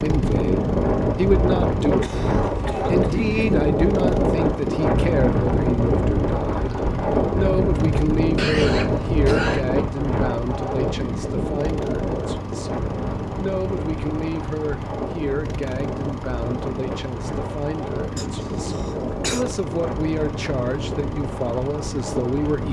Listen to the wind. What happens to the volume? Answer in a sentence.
The loudness of the wind goes down.